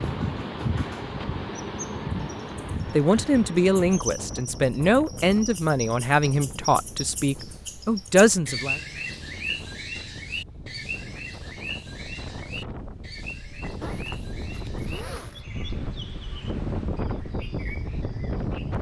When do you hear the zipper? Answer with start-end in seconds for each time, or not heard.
13.8-15.4.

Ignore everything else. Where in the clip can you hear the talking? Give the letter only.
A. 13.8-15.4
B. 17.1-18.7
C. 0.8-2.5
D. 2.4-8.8
D.